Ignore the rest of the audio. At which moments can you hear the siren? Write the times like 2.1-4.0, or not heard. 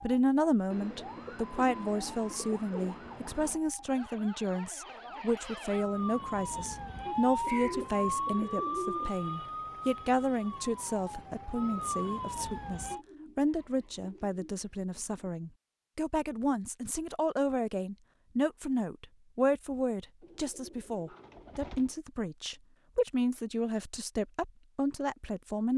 0.0-13.1.